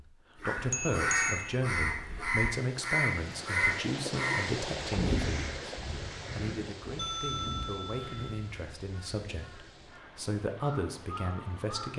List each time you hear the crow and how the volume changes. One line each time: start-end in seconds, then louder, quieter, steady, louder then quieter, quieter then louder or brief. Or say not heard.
0.4-11.9 quieter.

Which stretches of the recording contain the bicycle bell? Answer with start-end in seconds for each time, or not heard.
0.6-2.5, 7.0-8.5.